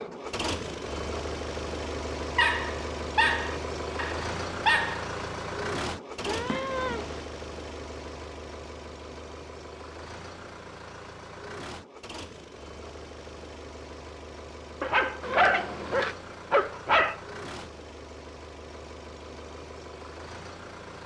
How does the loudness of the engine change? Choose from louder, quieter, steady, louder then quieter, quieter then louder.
quieter.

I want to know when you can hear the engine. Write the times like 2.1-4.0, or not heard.
0.0-21.0.